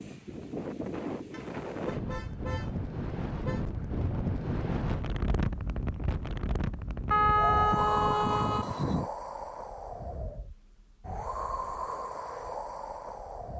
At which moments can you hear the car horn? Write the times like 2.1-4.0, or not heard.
1.3-3.6, 7.1-9.1.